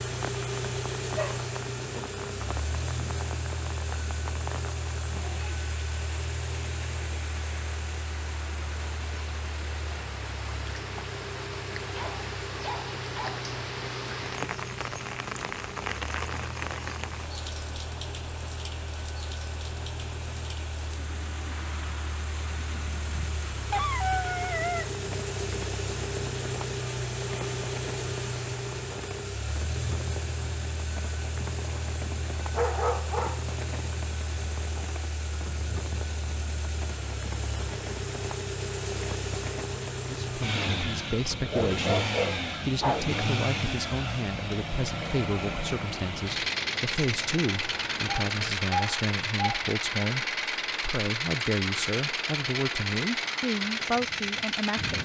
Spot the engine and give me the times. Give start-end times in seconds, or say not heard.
0.0-55.0.